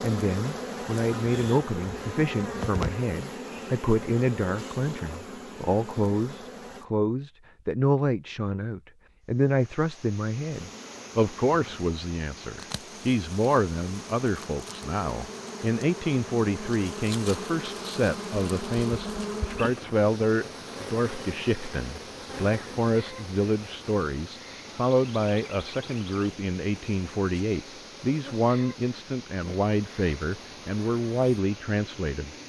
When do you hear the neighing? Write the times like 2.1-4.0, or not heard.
not heard.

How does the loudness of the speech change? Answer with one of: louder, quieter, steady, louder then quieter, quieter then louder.
steady.